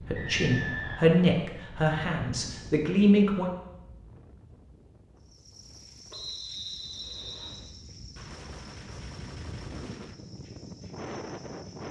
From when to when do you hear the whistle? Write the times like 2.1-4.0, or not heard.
0.1-1.2, 6.1-7.7.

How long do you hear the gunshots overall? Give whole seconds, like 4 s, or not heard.
2 s.